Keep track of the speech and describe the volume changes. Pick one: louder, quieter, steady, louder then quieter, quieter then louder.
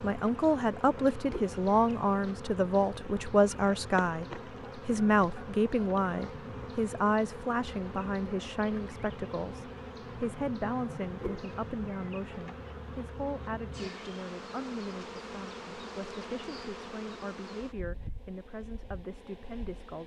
quieter.